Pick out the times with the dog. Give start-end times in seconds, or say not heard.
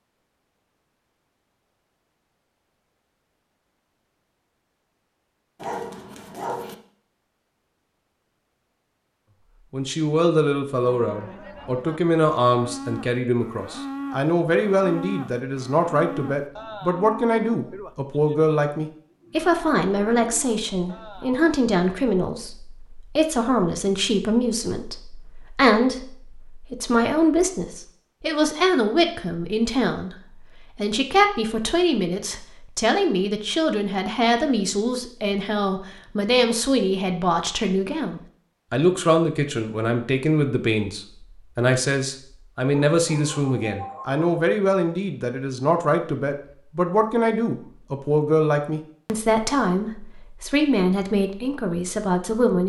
5.6-6.8, 42.9-44.2.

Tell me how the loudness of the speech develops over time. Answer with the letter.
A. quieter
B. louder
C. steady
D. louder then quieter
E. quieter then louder
C.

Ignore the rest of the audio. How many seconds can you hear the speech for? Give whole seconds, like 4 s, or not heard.
43 s.